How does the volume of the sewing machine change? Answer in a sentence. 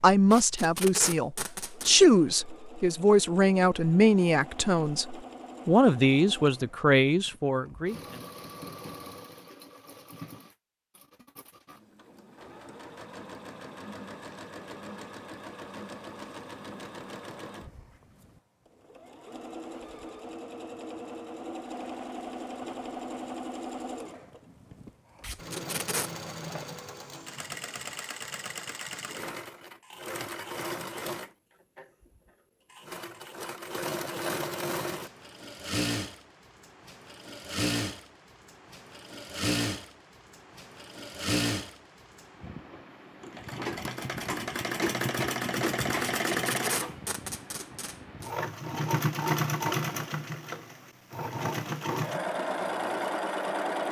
The loudness of the sewing machine goes up.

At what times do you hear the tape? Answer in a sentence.
The tape can be heard from 0.3 to 1.9 s, from 25.2 to 26.1 s and from 46.2 to 48.3 s.